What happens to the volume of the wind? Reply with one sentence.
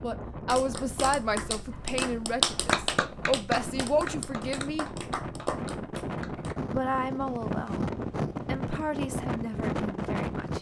The volume of the wind goes up.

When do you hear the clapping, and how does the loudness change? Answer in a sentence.
The clapping can be heard from 0.5 to 6.5 s, getting louder then quieter.